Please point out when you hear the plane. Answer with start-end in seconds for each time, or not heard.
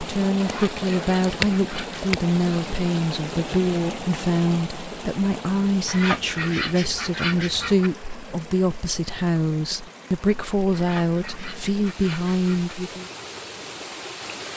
not heard.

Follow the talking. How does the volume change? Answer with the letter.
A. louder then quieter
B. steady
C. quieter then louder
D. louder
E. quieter
B.